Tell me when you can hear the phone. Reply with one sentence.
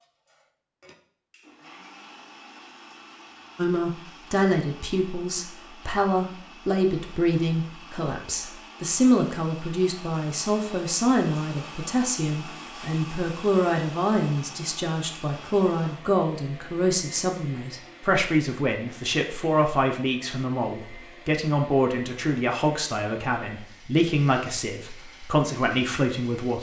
You can't hear the phone here.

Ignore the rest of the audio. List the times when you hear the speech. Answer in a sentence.
The speech can be heard from 3.5 to 26.5 s.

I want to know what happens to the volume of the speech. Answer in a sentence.
The volume of the speech stays about the same.